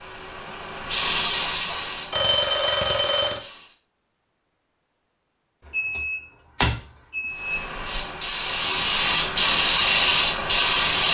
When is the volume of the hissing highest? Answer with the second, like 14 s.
10 s.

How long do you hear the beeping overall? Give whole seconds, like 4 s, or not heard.
3 s.